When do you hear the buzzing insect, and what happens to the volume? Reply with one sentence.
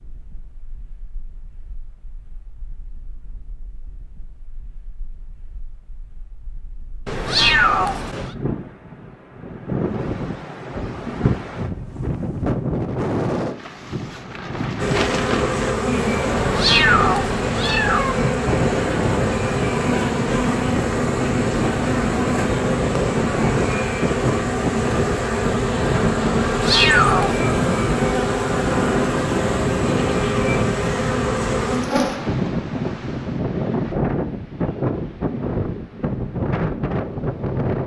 You can hear the buzzing insect from 14.8 to 32.2 s, at a steady volume.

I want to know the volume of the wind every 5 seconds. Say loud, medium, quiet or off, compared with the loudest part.
quiet, medium, loud, loud, loud, loud, loud, loud.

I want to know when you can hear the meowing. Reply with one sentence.
The meowing can be heard from 7.0 to 8.3 s, from 16.4 to 18.3 s and from 26.4 to 27.5 s.